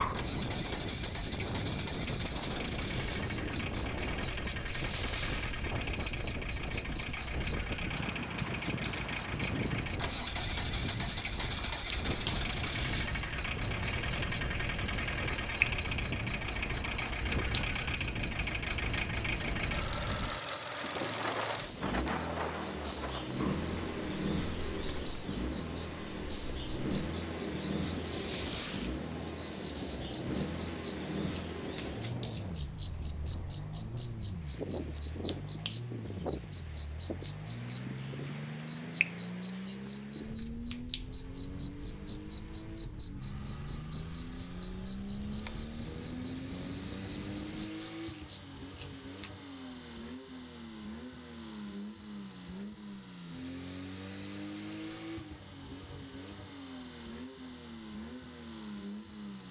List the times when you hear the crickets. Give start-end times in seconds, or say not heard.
0.0-49.3.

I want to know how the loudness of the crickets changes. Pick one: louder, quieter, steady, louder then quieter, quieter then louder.
steady.